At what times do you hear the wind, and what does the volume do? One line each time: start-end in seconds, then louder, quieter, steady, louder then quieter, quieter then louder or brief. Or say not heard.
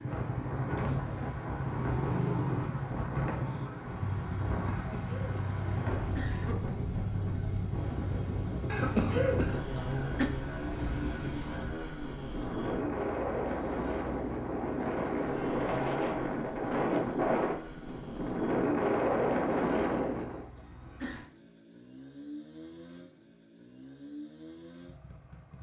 0.0-20.4 louder.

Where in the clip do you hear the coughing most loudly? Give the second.
9 s.